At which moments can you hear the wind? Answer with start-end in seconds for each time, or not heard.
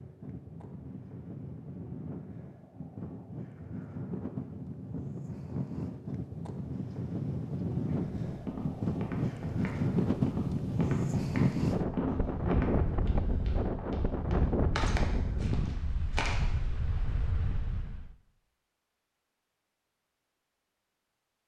0.0-18.1.